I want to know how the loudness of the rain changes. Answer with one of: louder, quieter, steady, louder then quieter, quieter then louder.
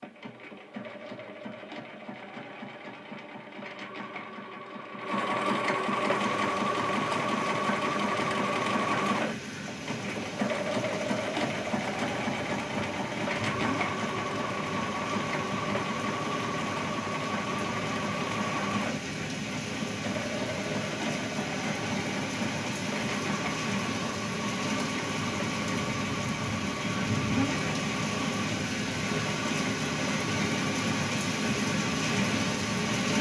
louder.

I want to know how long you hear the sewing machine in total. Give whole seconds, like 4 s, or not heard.
33 s.